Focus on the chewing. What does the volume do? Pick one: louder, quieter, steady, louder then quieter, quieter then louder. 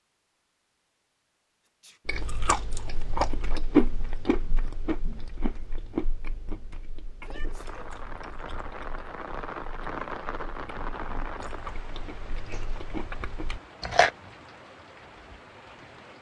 quieter then louder.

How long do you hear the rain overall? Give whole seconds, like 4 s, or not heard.
9 s.